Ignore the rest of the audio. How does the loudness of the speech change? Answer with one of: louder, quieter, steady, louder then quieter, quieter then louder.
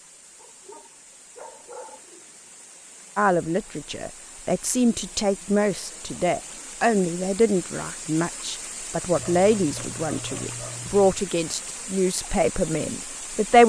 steady.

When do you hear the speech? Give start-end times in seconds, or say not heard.
3.1-13.6.